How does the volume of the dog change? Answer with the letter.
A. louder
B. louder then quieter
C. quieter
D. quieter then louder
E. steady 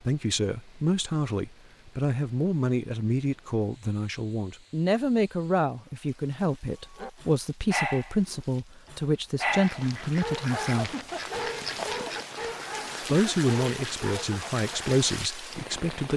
C.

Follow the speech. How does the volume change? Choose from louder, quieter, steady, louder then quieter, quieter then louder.
steady.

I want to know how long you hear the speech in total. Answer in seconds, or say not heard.
14 s.